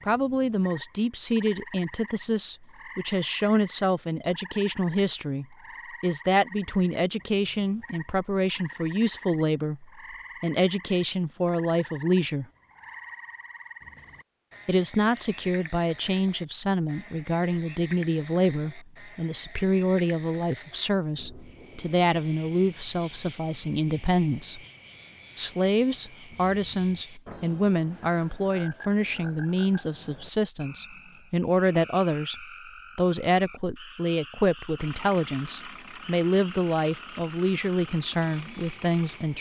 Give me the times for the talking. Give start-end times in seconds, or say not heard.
0.1-12.4, 14.7-24.6, 25.4-39.3.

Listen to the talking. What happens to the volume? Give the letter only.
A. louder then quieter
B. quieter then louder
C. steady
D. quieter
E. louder
C.